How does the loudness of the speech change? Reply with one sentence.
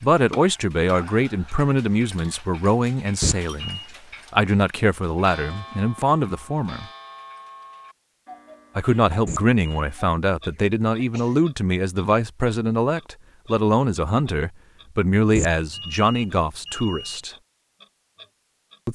The volume of the speech stays about the same.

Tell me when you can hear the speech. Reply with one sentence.
The speech can be heard from 0.0 to 6.8 s and from 8.8 to 17.4 s.